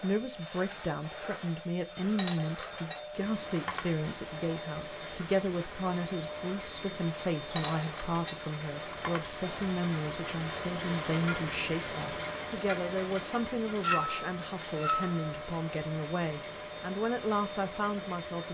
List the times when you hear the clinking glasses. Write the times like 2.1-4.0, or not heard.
2.1-4.0, 7.5-9.3, 13.8-15.2.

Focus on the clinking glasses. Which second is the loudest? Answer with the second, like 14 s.
14 s.